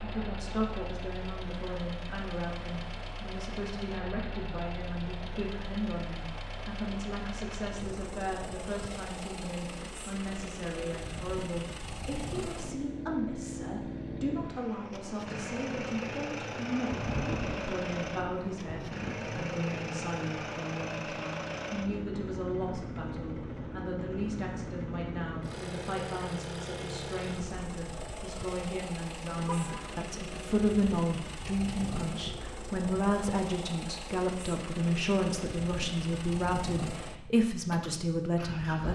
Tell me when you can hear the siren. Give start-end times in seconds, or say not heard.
not heard.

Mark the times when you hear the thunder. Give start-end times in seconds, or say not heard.
16.9-19.6.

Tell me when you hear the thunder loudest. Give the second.
17 s.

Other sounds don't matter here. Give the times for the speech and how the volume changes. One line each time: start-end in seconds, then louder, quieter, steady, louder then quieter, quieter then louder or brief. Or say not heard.
0.0-38.8 louder.